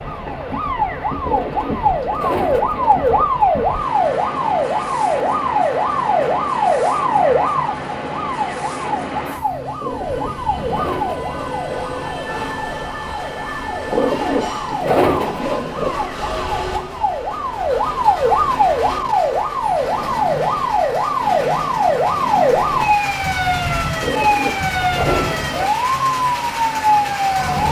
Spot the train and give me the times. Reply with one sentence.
You can hear the train from 0.0 to 27.6 s.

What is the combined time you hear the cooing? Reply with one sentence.
The cooing can be heard for 8 seconds in total.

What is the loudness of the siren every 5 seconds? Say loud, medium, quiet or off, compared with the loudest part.
loud, loud, medium, loud, loud, loud.